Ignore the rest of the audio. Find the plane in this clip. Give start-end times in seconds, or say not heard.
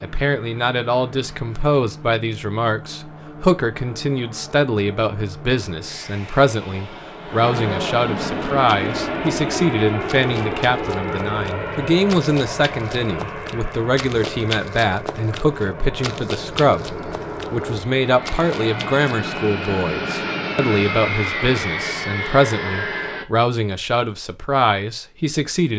0.0-23.2.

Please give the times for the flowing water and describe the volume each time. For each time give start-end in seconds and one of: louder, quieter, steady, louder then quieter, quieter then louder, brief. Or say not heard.
not heard.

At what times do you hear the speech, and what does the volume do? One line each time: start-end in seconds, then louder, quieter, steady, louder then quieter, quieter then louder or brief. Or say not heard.
0.0-25.7 steady.